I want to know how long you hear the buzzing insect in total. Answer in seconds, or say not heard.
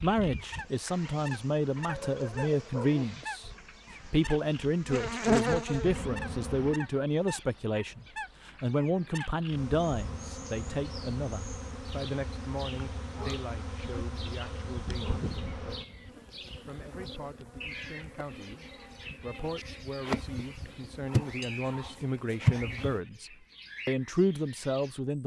20 s.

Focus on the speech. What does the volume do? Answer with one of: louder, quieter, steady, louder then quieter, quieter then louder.
quieter then louder.